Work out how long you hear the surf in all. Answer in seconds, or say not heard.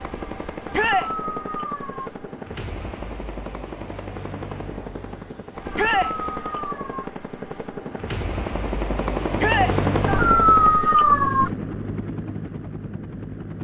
not heard.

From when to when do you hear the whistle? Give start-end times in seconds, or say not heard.
not heard.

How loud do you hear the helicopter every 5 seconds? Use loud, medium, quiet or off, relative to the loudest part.
medium, loud, loud.